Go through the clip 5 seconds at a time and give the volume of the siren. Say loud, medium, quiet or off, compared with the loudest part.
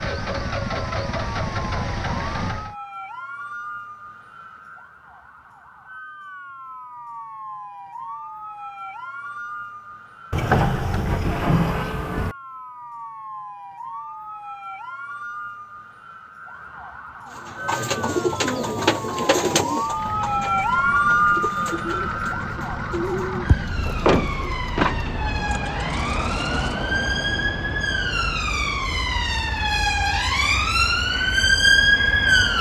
quiet, quiet, quiet, quiet, medium, medium, loud.